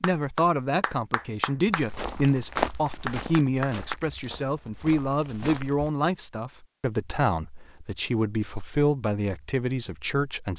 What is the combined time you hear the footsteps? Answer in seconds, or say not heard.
4 s.